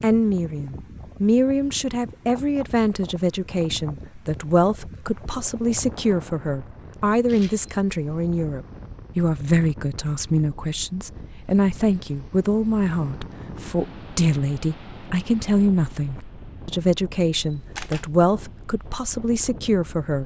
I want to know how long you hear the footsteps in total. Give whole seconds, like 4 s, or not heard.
not heard.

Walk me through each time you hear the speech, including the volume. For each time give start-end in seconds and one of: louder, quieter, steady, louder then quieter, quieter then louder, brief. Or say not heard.
0.0-20.2 steady.